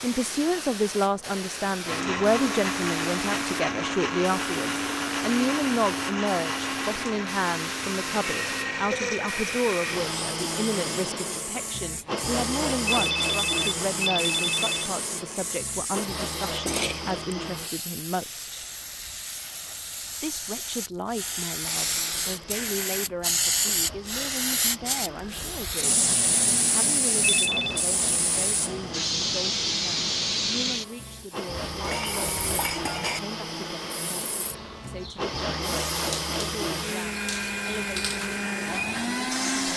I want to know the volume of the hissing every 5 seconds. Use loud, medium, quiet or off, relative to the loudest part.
medium, medium, medium, medium, loud, loud, loud, medium.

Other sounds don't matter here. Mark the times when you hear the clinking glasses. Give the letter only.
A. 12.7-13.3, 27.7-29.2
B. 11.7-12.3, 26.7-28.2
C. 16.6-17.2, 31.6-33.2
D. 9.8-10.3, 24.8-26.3
C.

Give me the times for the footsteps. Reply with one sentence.
The footsteps can't be heard in this clip.